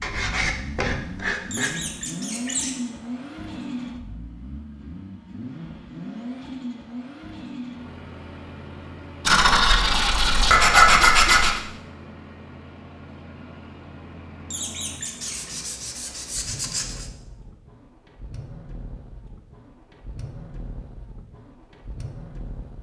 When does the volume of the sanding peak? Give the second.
11 s.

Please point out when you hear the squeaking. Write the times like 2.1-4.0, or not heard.
1.5-2.7, 14.5-15.6.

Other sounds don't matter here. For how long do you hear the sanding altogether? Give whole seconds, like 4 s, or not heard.
6 s.